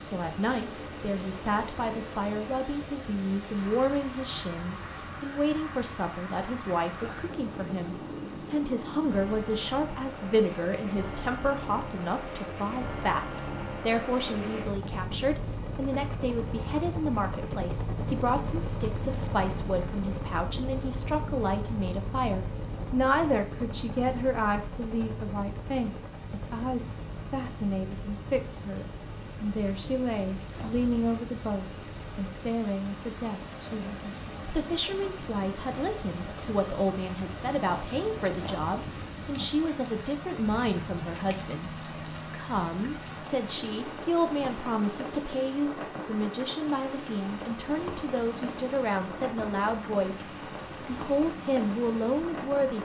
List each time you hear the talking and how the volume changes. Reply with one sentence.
You can hear the talking from 0.0 to 52.7 s, at a steady volume.